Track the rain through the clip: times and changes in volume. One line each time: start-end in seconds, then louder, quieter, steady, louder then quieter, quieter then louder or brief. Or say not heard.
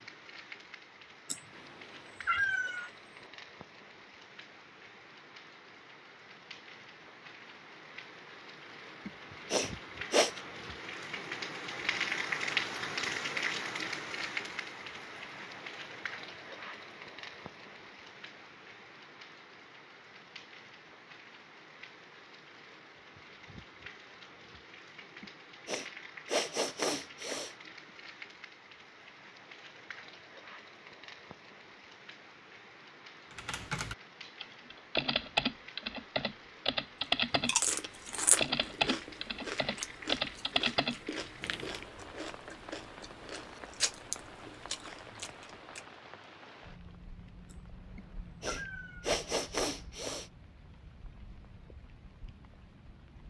0.0-53.2 louder then quieter.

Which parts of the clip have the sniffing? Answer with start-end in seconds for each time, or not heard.
9.1-10.3, 25.2-27.6, 48.0-50.2.